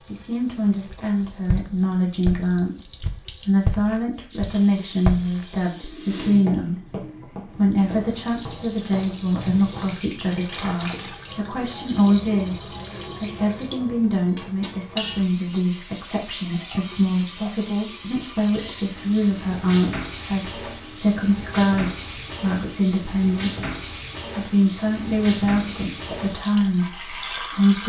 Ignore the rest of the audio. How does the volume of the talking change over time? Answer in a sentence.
The volume of the talking stays about the same.